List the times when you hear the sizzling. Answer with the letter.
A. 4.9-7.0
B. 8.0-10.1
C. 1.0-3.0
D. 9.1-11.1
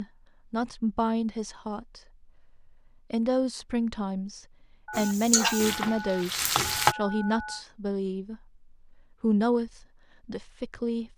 A.